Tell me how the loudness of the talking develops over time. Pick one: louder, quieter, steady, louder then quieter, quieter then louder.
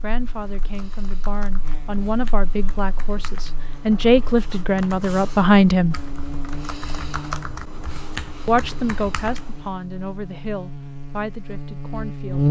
louder then quieter.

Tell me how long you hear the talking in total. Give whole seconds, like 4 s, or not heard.
10 s.